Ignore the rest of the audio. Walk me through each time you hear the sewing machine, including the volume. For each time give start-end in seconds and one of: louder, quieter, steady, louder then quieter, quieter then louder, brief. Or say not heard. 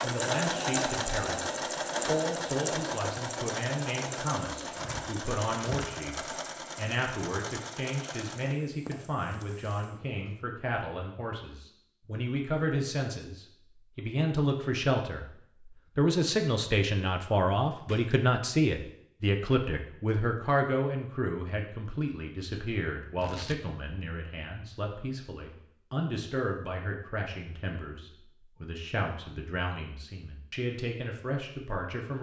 0.0-10.4 quieter.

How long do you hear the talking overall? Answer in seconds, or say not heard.
32 s.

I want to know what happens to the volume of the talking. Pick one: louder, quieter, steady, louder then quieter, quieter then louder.
louder then quieter.